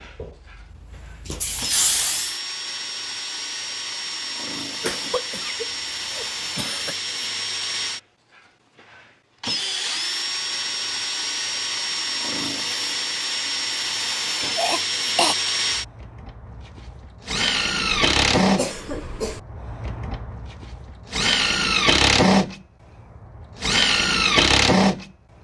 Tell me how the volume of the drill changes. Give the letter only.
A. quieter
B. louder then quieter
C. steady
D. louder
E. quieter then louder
D.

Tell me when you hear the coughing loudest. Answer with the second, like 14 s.
15 s.